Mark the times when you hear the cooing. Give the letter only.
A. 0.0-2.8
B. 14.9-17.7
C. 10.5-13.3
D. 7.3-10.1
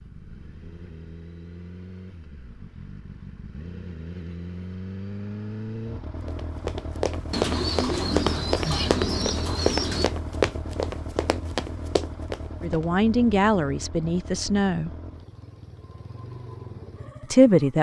D.